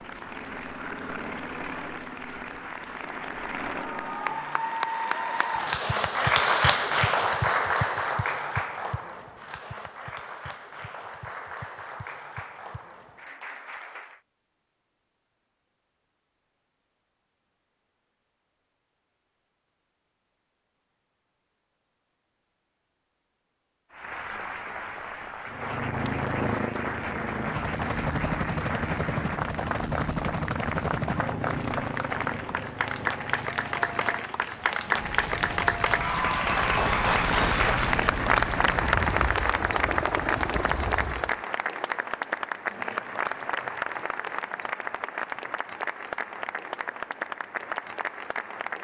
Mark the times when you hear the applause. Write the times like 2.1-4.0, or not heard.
0.0-14.2, 23.9-48.8.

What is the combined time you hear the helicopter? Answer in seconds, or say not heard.
21 s.